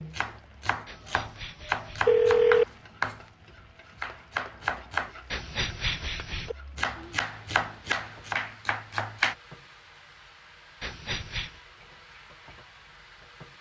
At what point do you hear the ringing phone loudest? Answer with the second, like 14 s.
2 s.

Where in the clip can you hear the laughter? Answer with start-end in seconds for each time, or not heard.
not heard.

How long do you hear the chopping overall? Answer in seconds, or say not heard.
8 s.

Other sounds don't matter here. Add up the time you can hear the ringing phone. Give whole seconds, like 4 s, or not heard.
4 s.